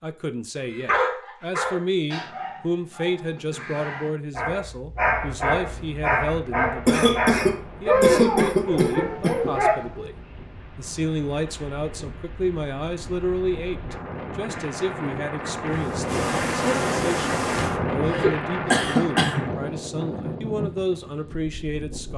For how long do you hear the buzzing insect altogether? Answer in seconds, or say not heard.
2 s.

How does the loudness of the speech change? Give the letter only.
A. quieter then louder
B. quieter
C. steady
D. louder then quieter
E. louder
C.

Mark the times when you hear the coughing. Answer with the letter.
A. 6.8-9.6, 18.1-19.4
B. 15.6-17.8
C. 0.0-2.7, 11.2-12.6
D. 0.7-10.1
A.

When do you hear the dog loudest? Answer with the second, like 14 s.
8 s.